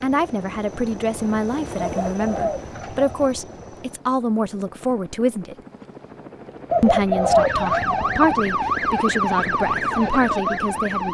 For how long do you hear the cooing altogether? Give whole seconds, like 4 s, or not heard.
3 s.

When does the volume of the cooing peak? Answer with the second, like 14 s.
7 s.